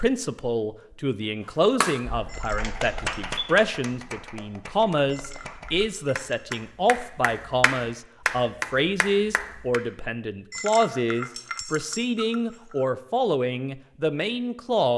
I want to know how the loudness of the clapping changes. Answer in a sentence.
The loudness of the clapping goes down, then up.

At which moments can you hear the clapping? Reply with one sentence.
The clapping can be heard from 1.8 to 9.8 s.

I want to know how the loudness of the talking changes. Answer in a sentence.
The volume of the talking stays about the same.